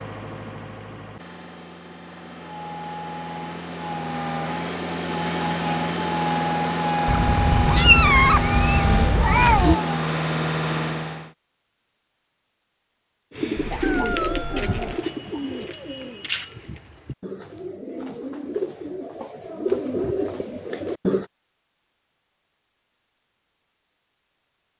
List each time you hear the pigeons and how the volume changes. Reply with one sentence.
You can hear the pigeons from 13.3 to 21.2 s, getting quieter then louder.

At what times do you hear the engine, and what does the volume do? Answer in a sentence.
The engine can be heard from 0.0 to 11.3 s, getting louder.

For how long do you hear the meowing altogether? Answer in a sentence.
The meowing can be heard for 4 seconds in total.